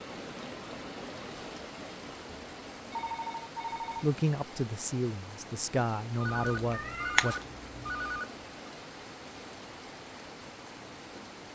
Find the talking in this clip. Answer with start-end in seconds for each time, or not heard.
4.0-7.3.